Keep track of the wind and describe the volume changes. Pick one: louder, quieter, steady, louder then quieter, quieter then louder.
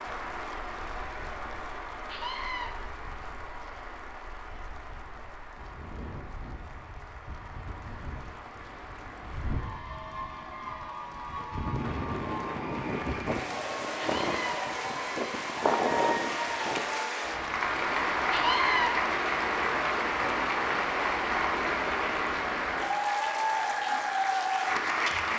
louder.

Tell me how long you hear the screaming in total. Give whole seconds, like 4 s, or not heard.
2 s.